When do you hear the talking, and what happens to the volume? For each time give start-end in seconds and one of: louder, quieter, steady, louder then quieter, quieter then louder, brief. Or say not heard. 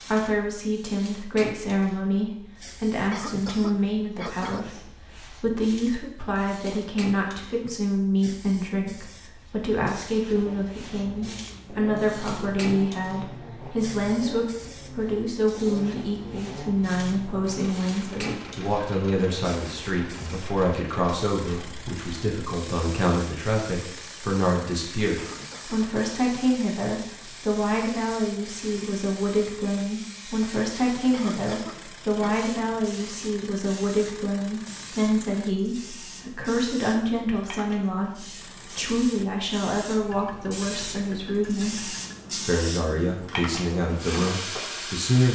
0.0-45.3 steady.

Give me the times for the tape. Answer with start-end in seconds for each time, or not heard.
not heard.